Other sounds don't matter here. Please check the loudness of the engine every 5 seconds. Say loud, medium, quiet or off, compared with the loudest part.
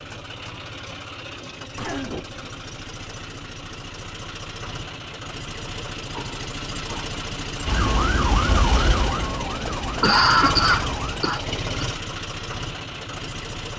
medium, loud, loud.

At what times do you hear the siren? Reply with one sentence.
The siren can be heard from 7.7 to 11.2 s.